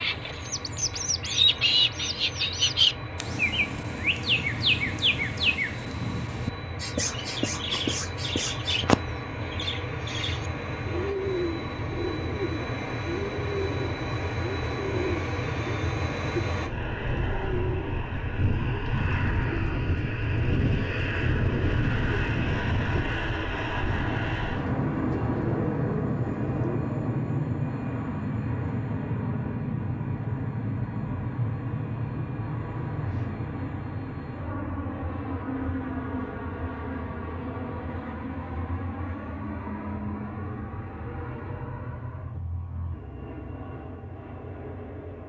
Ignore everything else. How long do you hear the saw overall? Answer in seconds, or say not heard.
not heard.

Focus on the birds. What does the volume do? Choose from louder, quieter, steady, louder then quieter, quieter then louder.
quieter.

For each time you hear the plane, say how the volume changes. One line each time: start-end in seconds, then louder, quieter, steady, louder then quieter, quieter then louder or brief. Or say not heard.
0.0-45.2 louder then quieter.